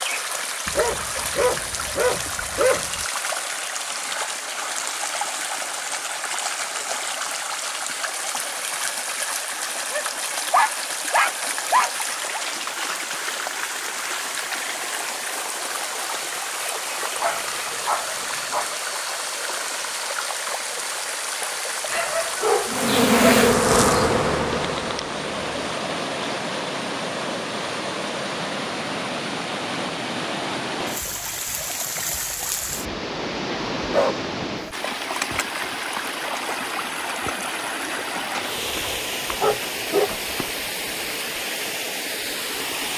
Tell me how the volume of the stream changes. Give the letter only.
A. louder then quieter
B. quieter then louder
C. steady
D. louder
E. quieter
C.